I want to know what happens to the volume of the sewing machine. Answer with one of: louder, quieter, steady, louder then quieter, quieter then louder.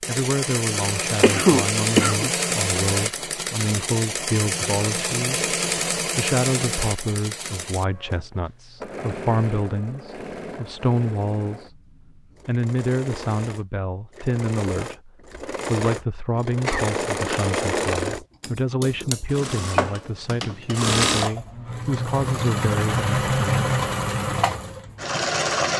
quieter then louder.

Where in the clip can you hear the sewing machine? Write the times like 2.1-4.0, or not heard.
0.0-25.7.